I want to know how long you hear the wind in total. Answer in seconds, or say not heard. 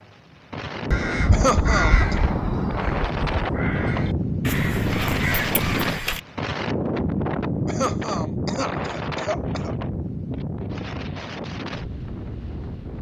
13 s.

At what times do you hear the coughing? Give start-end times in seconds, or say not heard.
1.3-2.1, 7.7-9.8.